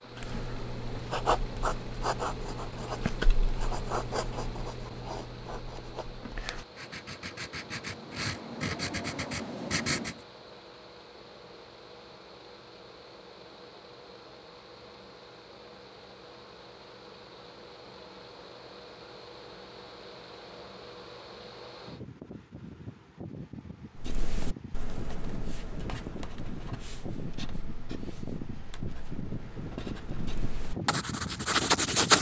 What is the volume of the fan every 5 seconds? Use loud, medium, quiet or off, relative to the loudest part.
medium, medium, medium, medium, medium, loud, loud.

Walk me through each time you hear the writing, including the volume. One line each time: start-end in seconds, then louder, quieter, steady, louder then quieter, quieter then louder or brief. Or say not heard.
0.1-10.2 quieter then louder
23.9-32.1 quieter then louder.